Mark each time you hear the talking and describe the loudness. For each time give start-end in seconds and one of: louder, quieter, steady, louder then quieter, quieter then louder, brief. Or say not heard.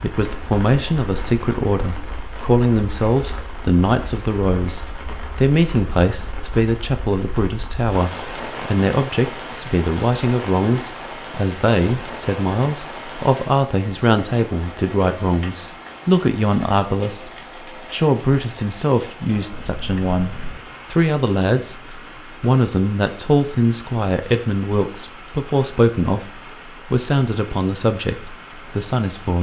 0.0-29.3 steady.